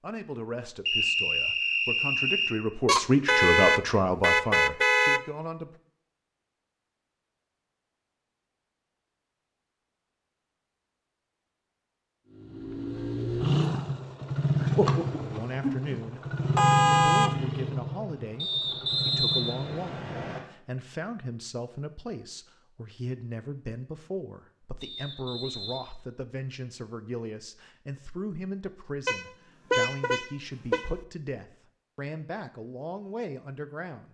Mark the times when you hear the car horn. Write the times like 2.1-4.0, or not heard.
2.9-5.2, 16.6-17.4, 29.1-30.9.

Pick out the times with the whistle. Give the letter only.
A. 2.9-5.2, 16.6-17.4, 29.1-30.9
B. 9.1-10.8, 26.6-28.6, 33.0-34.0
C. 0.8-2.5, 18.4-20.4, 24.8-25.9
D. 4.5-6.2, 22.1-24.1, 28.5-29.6
C.